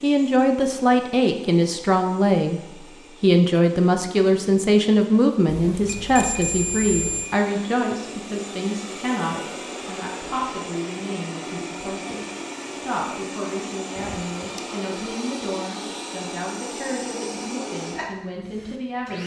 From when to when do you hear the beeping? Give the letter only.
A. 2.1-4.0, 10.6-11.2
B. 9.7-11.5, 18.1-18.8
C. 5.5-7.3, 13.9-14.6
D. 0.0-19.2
C.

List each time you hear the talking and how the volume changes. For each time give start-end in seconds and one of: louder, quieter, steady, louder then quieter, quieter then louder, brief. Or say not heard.
0.0-19.2 quieter.